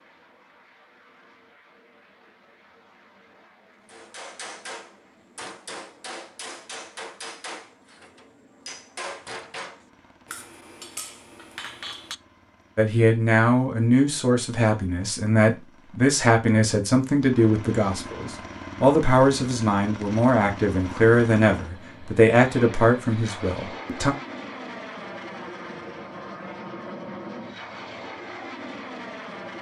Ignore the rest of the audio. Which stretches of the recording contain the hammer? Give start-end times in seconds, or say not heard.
3.9-12.2.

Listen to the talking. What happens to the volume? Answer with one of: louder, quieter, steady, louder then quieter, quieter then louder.
steady.